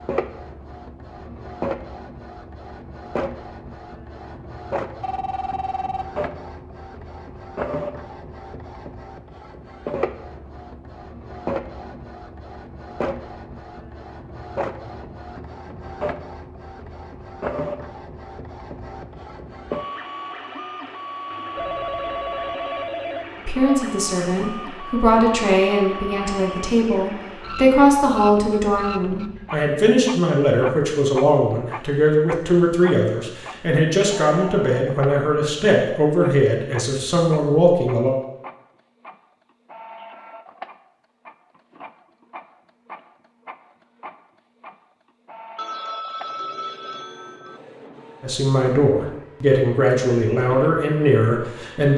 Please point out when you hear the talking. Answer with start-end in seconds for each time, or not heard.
23.4-38.1, 48.2-51.9.